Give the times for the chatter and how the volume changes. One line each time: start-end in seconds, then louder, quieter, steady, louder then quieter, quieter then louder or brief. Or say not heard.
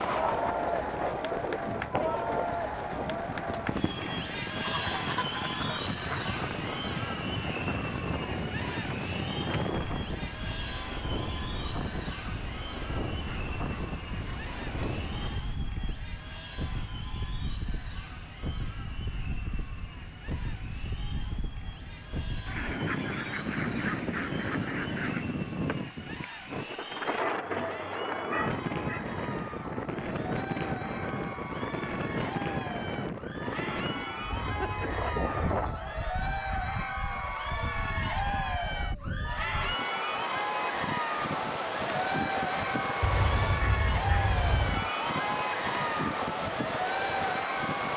0.0-47.9 quieter then louder.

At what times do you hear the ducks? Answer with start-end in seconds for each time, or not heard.
4.7-6.2, 13.1-15.7, 22.4-25.4, 34.3-35.9, 43.0-44.9.